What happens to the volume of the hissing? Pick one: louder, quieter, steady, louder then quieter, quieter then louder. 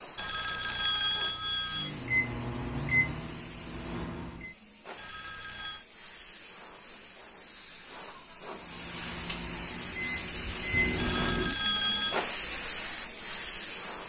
louder.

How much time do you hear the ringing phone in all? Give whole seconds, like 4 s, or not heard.
4 s.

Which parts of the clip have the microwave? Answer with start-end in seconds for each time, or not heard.
1.7-4.5, 8.6-11.6.